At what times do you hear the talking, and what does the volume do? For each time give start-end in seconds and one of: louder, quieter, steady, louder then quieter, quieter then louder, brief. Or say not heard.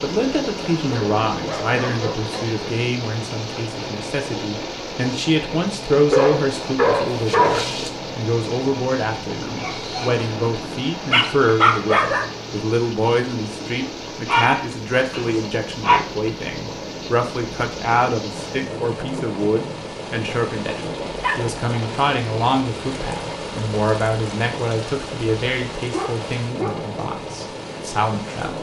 0.0-28.5 steady.